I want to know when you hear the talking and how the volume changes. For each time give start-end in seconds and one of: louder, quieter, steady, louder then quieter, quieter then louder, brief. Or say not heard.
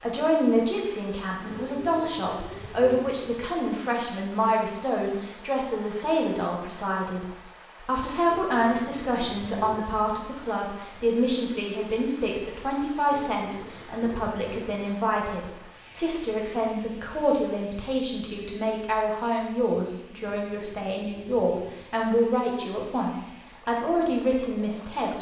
0.0-25.1 steady.